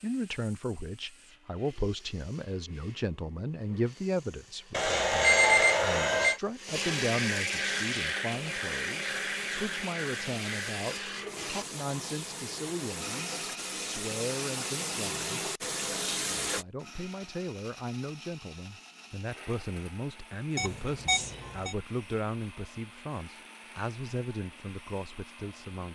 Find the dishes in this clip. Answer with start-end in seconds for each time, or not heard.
not heard.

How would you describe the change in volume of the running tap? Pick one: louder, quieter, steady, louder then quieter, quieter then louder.
louder.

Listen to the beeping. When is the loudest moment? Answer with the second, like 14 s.
5 s.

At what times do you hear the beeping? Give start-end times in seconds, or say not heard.
4.7-6.4, 20.6-21.8.